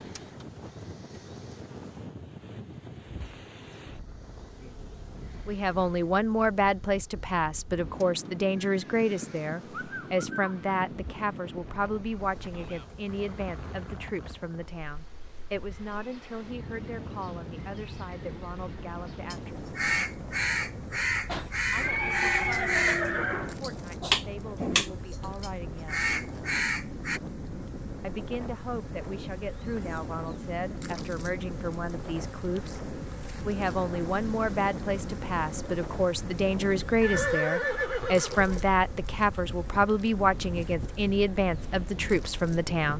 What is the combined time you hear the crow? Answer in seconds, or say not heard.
8 s.